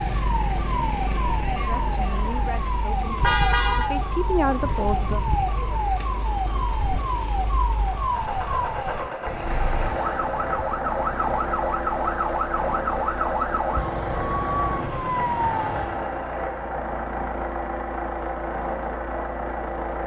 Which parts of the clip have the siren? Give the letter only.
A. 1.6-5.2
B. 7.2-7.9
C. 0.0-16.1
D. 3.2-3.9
C.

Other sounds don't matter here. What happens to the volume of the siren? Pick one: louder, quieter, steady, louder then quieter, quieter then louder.
steady.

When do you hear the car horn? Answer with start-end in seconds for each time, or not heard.
3.2-3.9.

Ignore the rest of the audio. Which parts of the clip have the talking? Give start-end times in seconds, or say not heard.
1.6-5.2.